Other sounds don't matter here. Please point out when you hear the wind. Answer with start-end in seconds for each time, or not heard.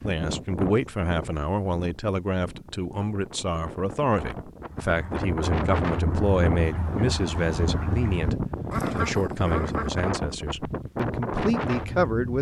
0.0-12.3.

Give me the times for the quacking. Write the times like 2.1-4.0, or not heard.
4.7-10.1.